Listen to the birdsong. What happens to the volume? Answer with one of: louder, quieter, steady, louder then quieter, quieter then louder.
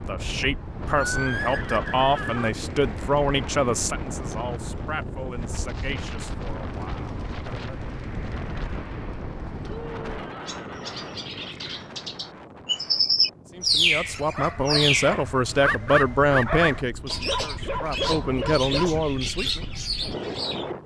louder then quieter.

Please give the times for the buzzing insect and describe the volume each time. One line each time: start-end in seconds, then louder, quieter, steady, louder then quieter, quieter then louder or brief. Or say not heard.
not heard.